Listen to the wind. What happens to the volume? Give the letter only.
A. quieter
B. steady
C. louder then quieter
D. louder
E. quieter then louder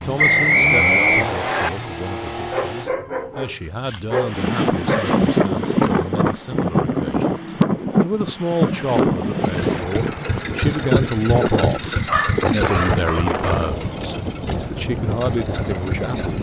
A.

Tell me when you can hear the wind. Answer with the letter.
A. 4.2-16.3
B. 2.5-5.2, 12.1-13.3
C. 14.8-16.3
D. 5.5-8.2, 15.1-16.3
A.